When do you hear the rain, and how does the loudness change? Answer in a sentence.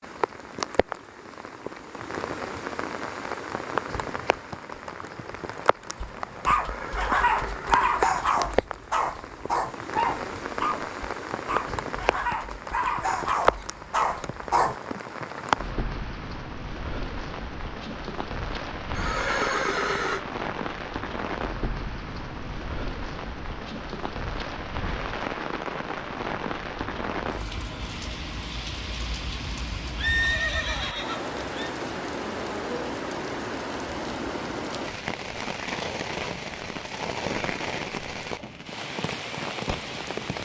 You can hear the rain from 0.0 to 40.4 s, at a steady volume.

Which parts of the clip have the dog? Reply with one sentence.
The dog can be heard from 6.0 to 15.4 s.